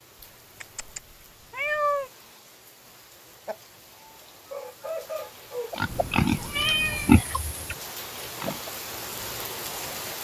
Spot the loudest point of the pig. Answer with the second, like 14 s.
7 s.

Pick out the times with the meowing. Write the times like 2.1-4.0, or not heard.
0.6-2.1, 5.8-7.2.